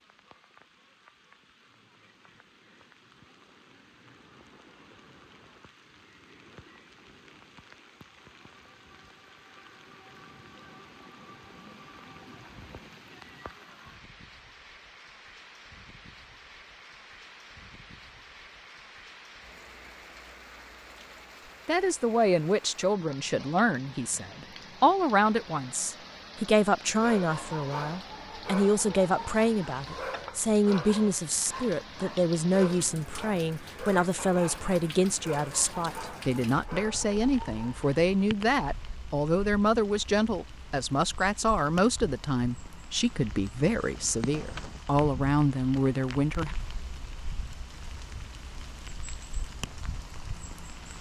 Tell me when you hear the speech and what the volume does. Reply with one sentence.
The speech can be heard from 21.6 to 46.5 s, at a steady volume.